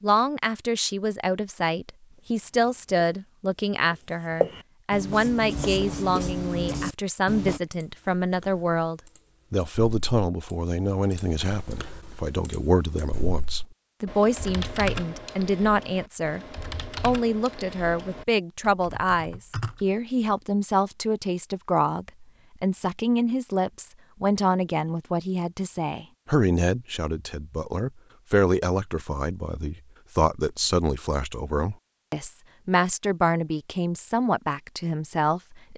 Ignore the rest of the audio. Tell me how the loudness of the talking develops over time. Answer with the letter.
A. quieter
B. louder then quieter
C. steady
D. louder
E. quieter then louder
C.